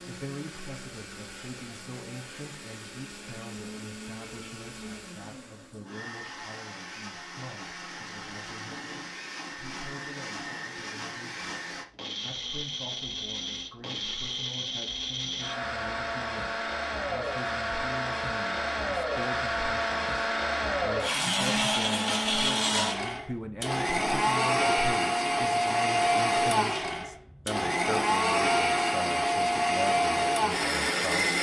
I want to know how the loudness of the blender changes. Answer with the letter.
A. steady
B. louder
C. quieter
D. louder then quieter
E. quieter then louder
B.